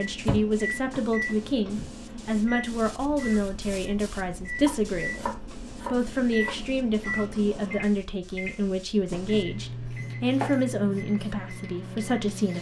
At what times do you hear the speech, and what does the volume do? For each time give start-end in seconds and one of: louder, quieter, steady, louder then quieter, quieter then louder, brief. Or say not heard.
0.0-12.5 steady.